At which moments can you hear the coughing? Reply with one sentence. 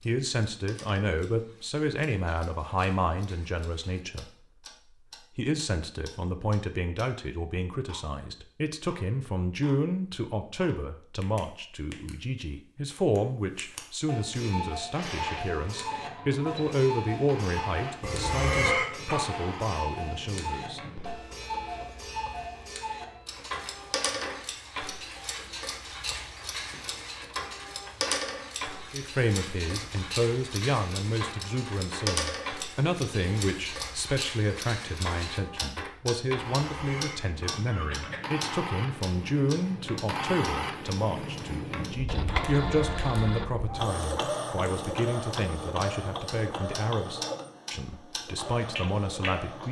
The coughing can be heard from 18.0 to 19.2 s and from 36.6 to 38.3 s.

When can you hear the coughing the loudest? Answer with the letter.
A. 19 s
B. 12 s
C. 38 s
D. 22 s
A.